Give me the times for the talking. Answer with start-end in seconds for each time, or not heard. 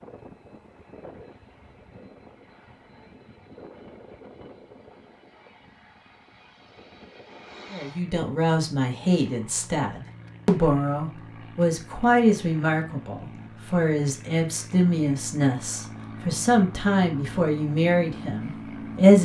7.7-19.1.